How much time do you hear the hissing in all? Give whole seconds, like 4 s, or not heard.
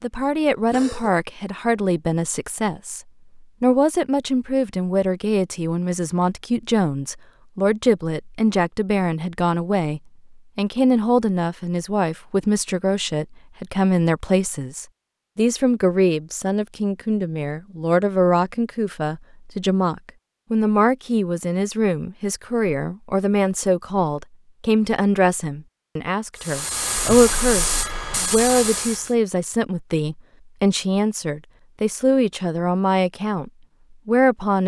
3 s.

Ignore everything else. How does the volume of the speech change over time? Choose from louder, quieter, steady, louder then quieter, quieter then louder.
steady.